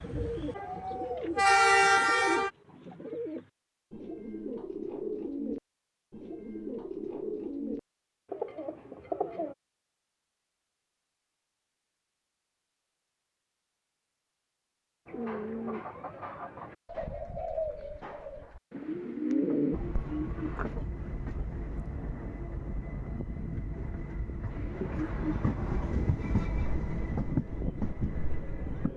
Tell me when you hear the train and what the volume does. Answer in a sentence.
You can hear the train briefly from 0.0 to 2.5 s; and from 19.7 to 28.9 s, getting louder.